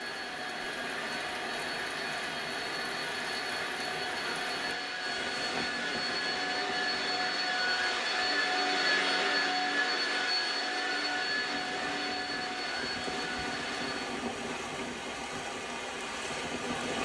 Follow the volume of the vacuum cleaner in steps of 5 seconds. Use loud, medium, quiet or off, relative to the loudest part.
medium, loud, loud, off.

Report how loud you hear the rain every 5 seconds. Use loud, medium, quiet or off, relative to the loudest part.
loud, medium, loud, loud.